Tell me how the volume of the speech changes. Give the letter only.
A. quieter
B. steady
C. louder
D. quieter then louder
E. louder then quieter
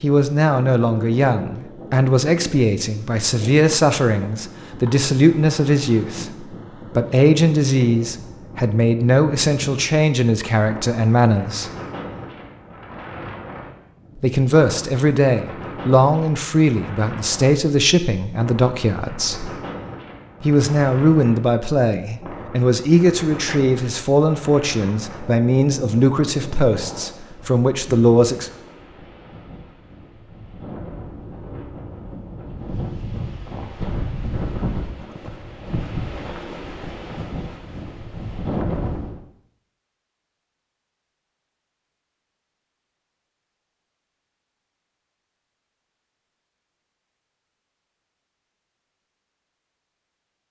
B.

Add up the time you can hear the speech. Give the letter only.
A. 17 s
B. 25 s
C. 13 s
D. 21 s
B.